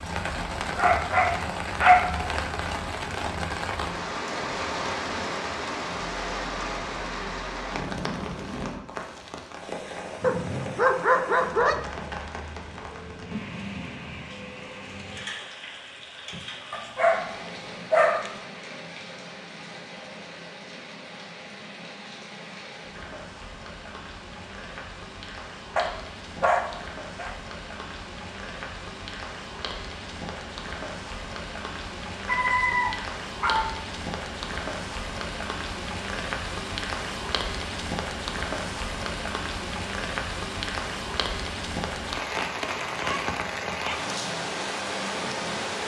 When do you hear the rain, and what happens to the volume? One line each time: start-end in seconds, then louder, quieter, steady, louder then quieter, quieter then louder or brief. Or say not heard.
0.0-45.8 quieter then louder.